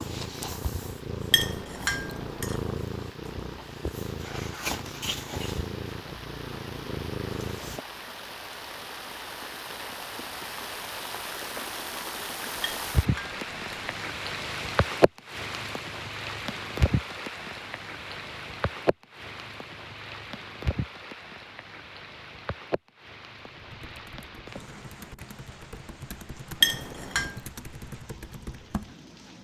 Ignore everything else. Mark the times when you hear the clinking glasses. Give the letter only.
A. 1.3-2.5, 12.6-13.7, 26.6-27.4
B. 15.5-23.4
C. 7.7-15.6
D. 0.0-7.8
A.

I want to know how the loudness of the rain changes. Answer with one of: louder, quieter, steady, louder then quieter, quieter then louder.
louder then quieter.